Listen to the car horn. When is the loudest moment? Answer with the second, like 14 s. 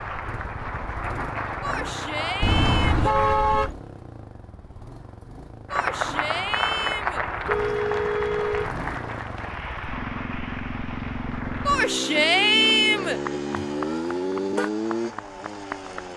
3 s.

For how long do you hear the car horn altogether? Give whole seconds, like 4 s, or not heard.
4 s.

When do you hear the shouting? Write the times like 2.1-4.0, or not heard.
1.6-3.1, 5.7-7.2, 11.7-13.2.